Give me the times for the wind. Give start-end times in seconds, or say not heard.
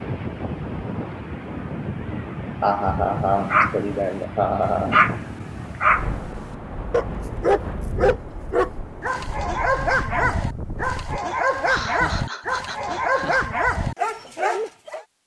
0.0-11.2.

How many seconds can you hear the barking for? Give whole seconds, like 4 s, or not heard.
12 s.